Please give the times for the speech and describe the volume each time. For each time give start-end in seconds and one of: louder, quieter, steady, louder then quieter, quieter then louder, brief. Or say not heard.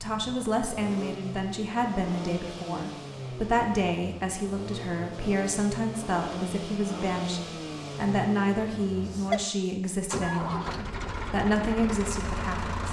0.0-12.8 steady.